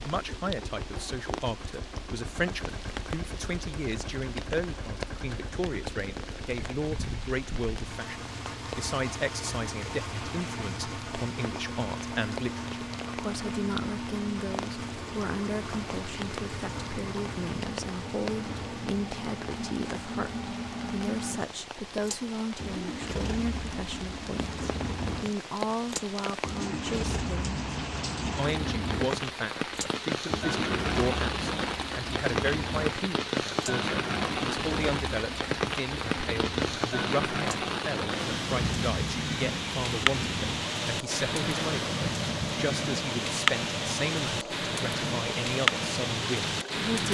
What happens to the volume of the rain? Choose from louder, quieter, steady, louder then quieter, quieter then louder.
louder.